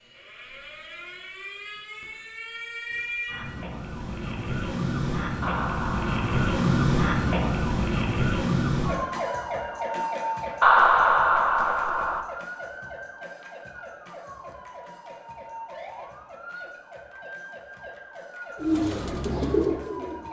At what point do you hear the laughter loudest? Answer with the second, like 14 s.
11 s.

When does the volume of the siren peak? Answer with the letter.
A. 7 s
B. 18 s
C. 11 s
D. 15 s
A.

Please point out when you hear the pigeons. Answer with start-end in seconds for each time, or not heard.
18.6-20.2.